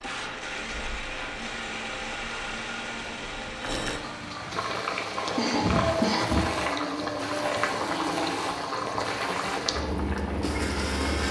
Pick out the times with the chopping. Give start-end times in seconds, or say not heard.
not heard.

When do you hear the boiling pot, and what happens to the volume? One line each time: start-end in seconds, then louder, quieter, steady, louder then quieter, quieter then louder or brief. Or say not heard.
0.0-11.2 louder.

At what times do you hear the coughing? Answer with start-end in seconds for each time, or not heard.
5.3-6.5.